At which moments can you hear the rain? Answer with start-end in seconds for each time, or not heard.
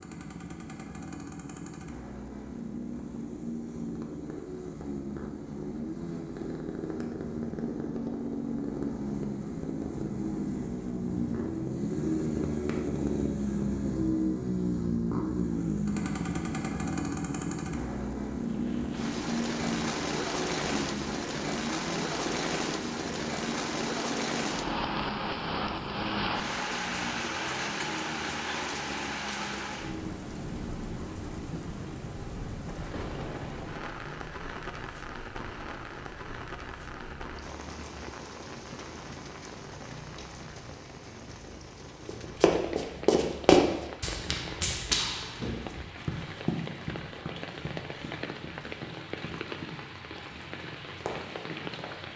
18.5-52.1.